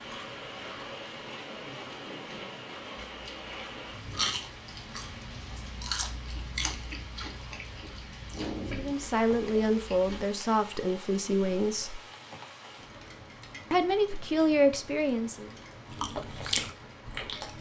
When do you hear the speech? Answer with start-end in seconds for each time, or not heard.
8.7-12.0, 13.7-15.5.